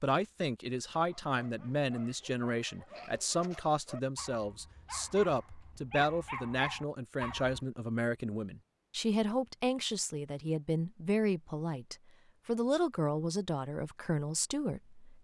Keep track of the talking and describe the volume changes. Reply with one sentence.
The loudness of the talking stays about the same.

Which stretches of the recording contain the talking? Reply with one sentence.
The talking can be heard from 0.0 to 15.2 s.